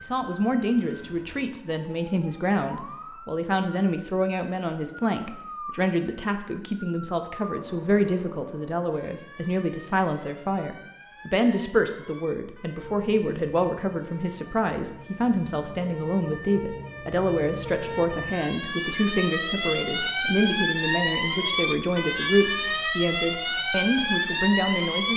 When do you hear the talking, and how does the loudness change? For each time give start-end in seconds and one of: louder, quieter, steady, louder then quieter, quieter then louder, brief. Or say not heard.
0.0-25.1 steady.